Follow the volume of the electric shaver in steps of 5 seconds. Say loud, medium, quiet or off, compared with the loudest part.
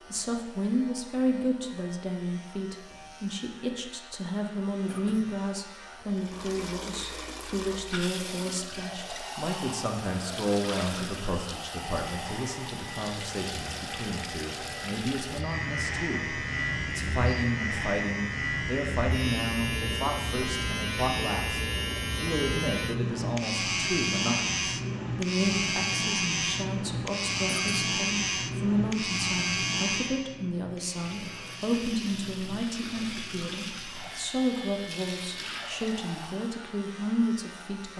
quiet, quiet, quiet, loud, loud, loud, quiet, quiet.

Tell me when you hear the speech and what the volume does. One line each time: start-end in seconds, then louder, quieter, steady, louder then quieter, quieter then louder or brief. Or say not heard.
0.1-37.9 steady.